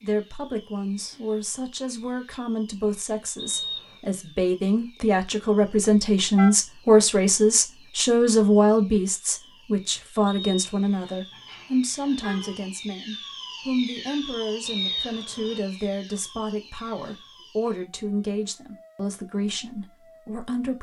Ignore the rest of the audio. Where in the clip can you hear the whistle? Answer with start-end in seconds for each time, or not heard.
3.4-4.0, 10.2-11.2, 14.7-15.6.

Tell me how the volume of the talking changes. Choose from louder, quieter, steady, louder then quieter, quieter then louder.
louder then quieter.